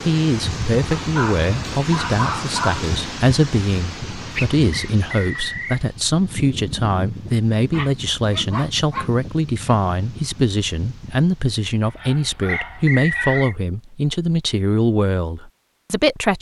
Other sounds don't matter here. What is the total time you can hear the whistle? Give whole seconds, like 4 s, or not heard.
2 s.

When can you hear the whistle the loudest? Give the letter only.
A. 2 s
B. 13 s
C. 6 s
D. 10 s
B.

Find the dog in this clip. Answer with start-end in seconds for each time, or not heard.
0.9-2.9, 7.7-9.1, 11.8-13.6.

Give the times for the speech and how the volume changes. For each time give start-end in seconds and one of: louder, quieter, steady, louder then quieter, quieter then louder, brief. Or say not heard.
0.0-16.3 steady.